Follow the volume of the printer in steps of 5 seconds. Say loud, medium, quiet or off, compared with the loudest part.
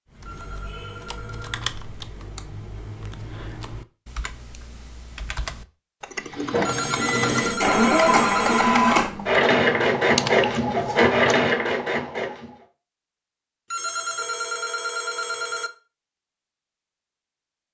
off, loud, loud, off.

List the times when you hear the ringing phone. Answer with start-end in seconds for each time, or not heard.
0.2-1.8, 6.7-8.7, 13.7-15.7.